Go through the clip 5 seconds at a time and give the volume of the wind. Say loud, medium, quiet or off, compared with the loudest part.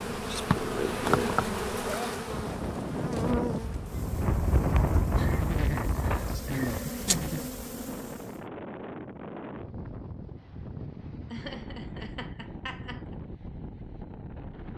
loud, loud, medium.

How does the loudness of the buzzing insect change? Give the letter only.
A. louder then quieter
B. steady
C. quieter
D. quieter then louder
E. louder
D.